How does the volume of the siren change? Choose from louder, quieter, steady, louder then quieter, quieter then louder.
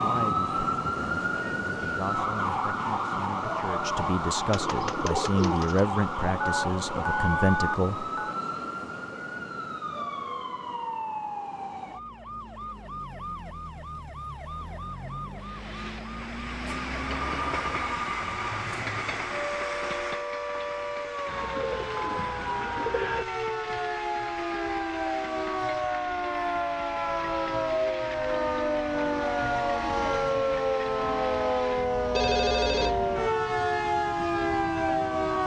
quieter then louder.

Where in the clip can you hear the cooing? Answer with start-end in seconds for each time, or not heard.
4.5-5.8, 21.2-23.2.